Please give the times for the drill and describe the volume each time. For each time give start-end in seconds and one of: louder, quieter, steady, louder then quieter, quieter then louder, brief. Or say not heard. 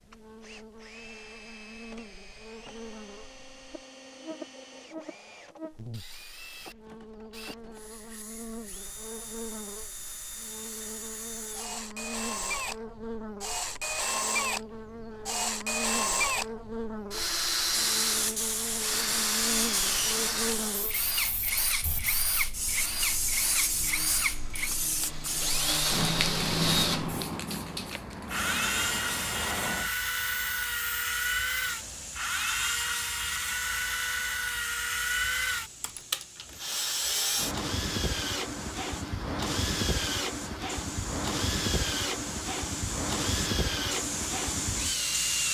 0.0-45.5 louder.